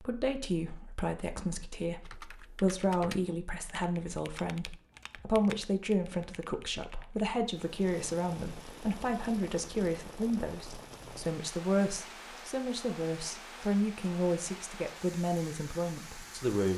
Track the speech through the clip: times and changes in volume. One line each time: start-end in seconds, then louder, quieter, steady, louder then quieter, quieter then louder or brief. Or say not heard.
0.0-16.7 steady.